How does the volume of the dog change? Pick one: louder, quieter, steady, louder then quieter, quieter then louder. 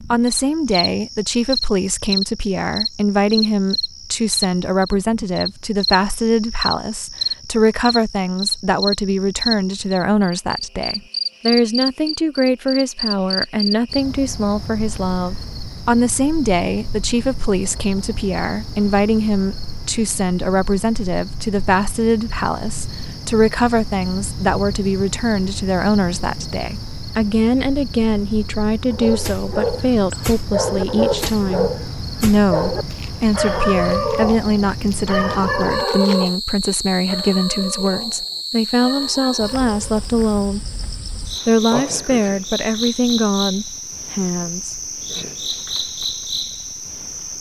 quieter.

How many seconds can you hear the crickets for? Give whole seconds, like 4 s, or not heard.
47 s.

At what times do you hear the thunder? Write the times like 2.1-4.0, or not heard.
not heard.